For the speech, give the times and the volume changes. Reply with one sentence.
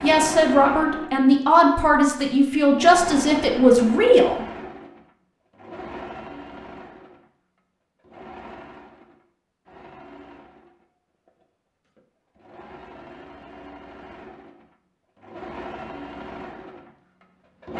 The speech can be heard from 0.0 to 4.4 s, at a steady volume.